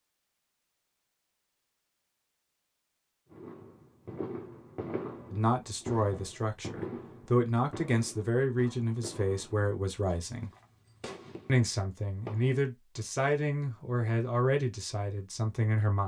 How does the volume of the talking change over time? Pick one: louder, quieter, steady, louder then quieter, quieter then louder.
steady.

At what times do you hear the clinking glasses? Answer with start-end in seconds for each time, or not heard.
not heard.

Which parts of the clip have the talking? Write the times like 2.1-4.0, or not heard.
5.3-10.5, 11.4-16.0.